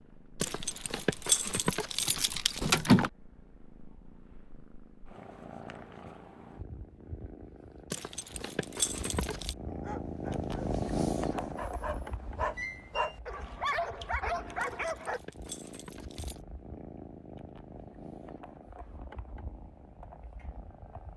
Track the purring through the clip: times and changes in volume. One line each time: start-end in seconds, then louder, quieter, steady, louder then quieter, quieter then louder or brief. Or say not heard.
0.0-21.1 louder then quieter.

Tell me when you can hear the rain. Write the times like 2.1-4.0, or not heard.
not heard.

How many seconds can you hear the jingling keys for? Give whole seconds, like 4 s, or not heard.
6 s.